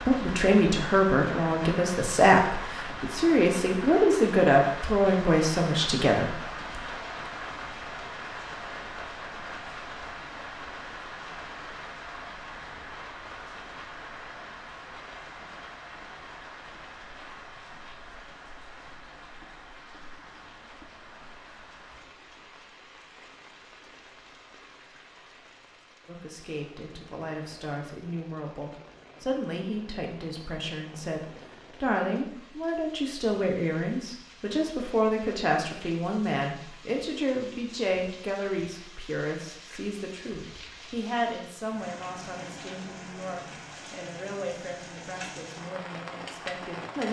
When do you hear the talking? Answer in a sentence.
You can hear the talking from 0.1 to 6.8 s and from 26.1 to 47.0 s.